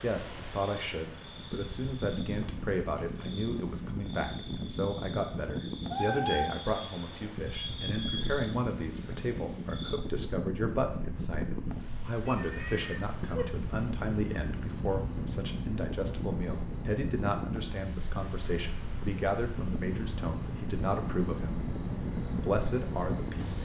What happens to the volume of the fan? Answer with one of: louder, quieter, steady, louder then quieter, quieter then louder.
steady.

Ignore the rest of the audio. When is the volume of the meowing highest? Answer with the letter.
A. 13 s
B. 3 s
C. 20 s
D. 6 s
D.